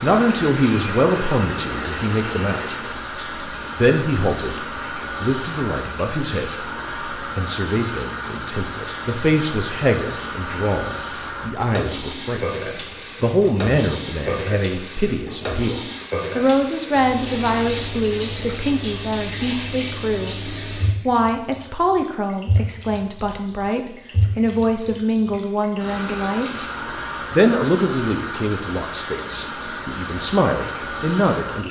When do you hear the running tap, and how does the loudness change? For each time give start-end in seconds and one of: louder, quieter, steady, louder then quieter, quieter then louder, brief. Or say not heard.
0.0-31.6 steady.